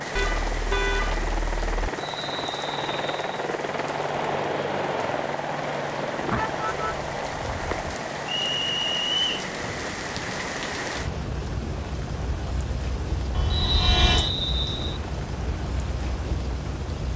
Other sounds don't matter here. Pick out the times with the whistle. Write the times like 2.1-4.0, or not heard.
1.9-3.5, 8.2-9.3, 13.5-15.0.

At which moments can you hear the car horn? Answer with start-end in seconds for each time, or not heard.
0.1-1.9, 6.2-8.0, 13.3-14.3.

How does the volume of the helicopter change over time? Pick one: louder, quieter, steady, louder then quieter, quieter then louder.
quieter.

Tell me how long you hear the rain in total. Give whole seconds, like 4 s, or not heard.
17 s.